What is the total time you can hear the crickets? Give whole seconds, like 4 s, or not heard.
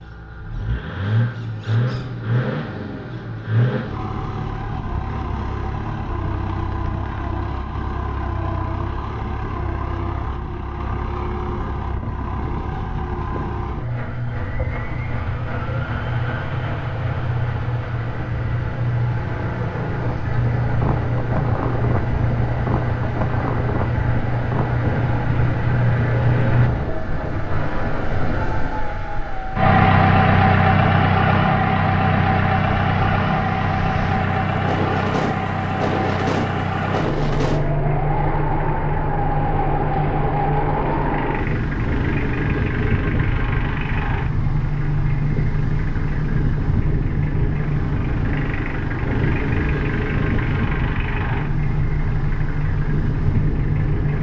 not heard.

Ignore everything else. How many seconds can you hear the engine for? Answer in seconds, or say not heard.
54 s.